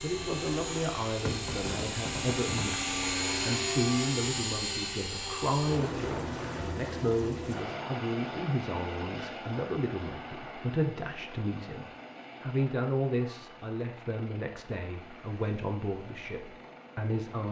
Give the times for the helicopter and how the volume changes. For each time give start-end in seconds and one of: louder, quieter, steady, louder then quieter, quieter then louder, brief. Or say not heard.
0.0-17.4 quieter.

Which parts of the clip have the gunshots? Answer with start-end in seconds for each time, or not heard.
1.2-2.8.